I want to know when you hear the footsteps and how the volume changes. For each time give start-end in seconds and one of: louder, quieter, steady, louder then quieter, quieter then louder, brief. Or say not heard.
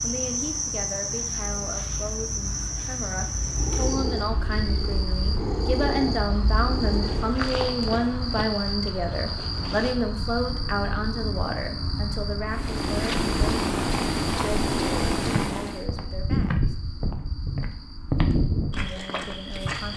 7.0-9.9 brief
15.2-19.9 louder then quieter.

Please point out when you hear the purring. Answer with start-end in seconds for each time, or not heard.
3.4-7.3, 12.4-15.8.